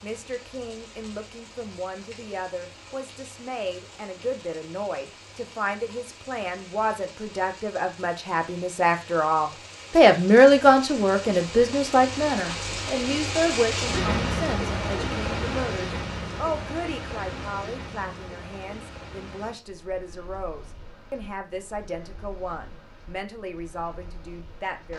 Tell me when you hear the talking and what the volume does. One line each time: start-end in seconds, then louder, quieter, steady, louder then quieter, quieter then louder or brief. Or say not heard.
0.0-24.9 louder then quieter.